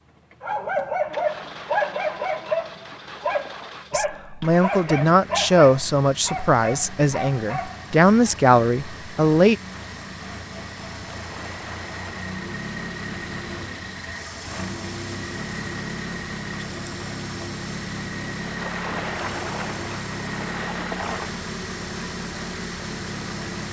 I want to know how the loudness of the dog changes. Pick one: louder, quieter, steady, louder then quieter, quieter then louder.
quieter.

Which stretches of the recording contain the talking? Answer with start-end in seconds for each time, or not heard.
3.9-9.6.